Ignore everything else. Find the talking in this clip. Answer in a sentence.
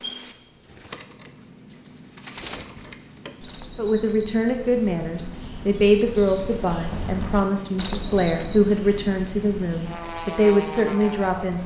You can hear the talking from 3.8 to 11.6 s.